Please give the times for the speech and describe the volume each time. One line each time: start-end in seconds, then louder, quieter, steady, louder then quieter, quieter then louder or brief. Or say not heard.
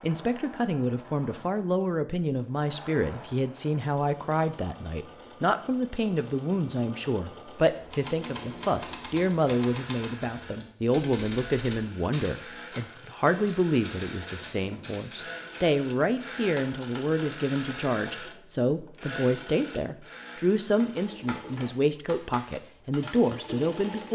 0.0-24.1 steady.